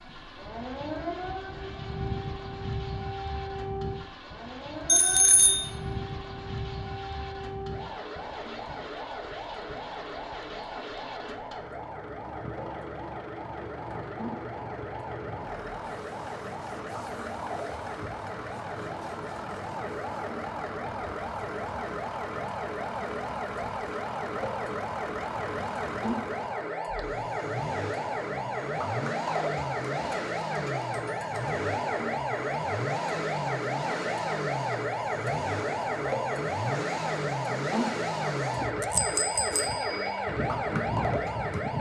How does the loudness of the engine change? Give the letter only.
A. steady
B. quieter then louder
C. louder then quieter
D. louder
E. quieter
D.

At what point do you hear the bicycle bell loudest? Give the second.
5 s.